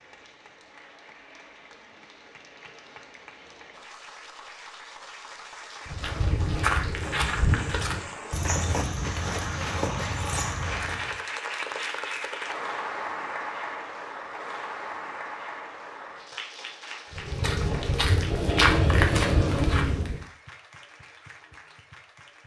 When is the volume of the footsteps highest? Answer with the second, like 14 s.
19 s.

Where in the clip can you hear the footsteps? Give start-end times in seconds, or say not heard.
5.8-11.2, 17.1-20.2.